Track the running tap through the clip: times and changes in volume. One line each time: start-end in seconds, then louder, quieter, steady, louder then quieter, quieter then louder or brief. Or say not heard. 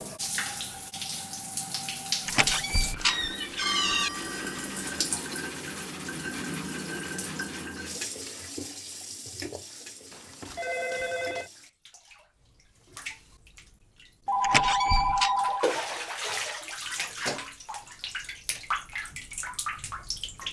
0.0-20.4 quieter then louder.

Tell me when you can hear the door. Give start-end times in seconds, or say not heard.
2.2-4.1, 14.4-15.3.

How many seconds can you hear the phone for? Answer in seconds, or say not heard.
5 s.